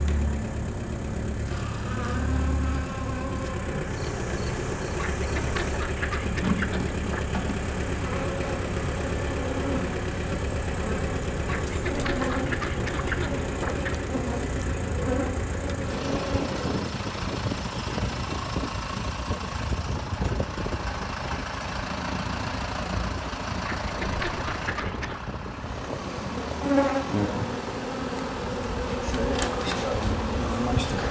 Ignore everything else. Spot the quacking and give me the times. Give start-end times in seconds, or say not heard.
5.0-7.2, 11.4-14.0, 23.6-25.2.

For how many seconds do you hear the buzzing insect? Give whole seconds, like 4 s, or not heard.
22 s.